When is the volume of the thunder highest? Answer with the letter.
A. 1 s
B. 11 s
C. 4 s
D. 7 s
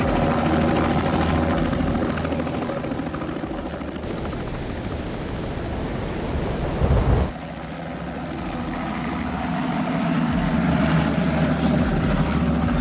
D.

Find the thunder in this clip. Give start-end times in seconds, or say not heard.
4.0-7.3.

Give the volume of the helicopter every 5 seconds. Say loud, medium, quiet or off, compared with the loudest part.
loud, medium, loud.